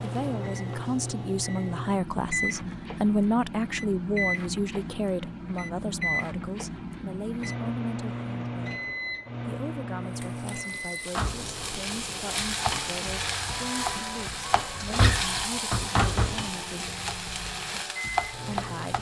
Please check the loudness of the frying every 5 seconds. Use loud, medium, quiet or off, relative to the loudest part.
off, off, loud, loud.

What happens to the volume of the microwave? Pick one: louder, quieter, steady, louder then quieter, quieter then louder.
quieter.